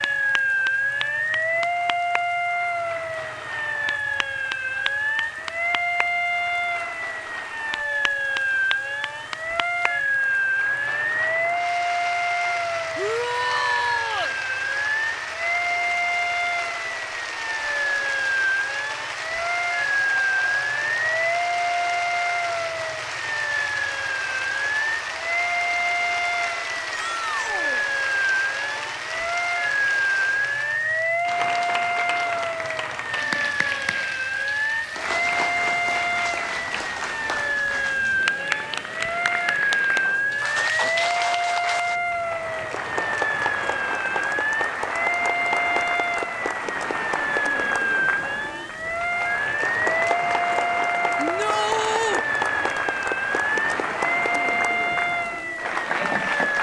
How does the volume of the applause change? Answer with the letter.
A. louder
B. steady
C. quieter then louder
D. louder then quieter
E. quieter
A.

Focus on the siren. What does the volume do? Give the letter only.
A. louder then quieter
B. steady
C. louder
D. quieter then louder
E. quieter
B.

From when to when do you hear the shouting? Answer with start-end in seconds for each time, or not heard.
12.9-14.3, 26.9-27.9, 51.2-52.2.